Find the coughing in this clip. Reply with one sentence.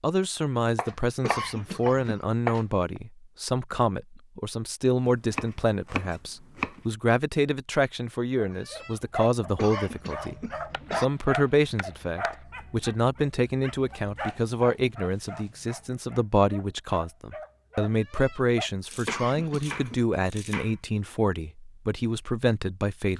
You can hear the coughing from 1.2 to 2.2 s, from 9.6 to 11.1 s and from 19.1 to 20.0 s.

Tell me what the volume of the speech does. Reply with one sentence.
The volume of the speech stays about the same.